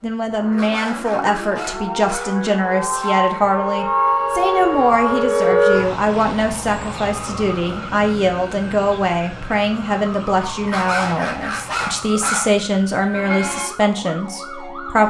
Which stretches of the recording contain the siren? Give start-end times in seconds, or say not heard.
0.1-15.0.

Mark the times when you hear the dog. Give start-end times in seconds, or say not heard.
0.5-3.2, 10.7-12.6.